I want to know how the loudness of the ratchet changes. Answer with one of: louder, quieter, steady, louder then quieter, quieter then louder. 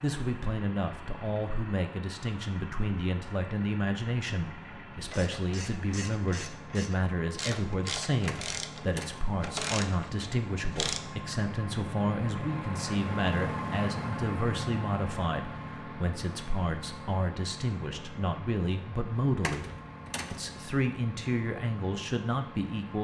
louder.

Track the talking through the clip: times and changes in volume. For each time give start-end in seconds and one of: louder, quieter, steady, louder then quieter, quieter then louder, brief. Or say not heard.
0.0-19.6 steady
20.3-22.9 brief.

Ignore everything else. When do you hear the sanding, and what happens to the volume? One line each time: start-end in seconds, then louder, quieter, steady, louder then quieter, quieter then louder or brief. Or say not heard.
not heard.